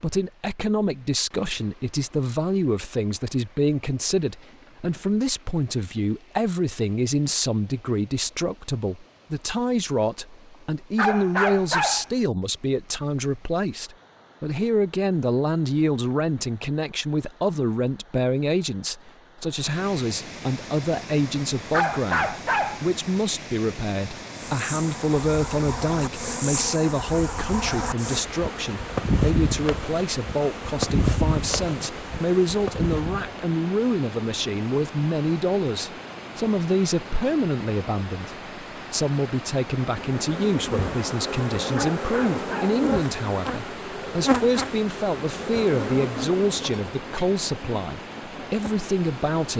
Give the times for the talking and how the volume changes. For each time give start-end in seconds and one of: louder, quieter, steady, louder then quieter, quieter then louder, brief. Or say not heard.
0.0-49.5 steady.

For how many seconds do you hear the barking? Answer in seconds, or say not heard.
3 s.